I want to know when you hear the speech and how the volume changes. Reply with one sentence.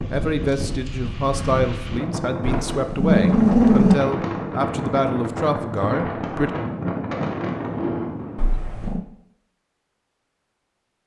You can hear the speech from 0.0 to 6.5 s, at a steady volume.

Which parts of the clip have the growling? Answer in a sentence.
You can hear the growling from 2.7 to 4.0 s and from 8.3 to 9.1 s.